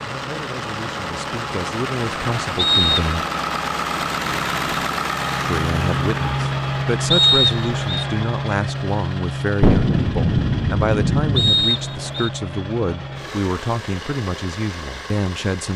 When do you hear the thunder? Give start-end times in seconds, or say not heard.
9.6-11.6.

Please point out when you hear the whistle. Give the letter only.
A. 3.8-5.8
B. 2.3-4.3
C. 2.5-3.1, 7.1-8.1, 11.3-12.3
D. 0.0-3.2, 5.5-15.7
C.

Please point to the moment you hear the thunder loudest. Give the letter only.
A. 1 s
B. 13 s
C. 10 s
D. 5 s
C.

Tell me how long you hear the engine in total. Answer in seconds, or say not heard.
16 s.